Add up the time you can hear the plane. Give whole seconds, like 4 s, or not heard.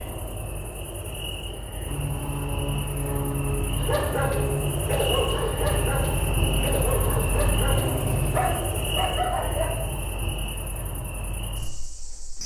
7 s.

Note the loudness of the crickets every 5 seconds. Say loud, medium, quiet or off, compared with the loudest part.
medium, loud, medium.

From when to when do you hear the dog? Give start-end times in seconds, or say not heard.
3.8-9.8.